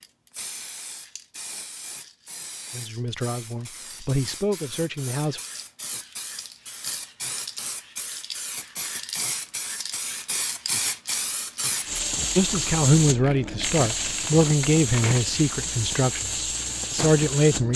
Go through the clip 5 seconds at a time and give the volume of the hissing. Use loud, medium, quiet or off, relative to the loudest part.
quiet, medium, loud, loud.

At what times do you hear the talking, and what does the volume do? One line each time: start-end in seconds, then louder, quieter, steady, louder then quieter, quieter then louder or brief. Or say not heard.
2.7-5.4 brief
12.3-17.7 quieter then louder.